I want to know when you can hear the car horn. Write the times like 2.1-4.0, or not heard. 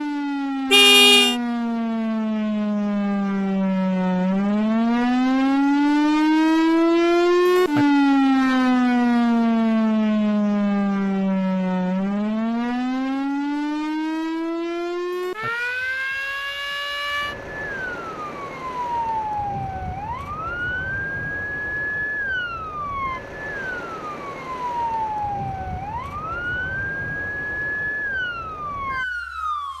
0.7-1.4.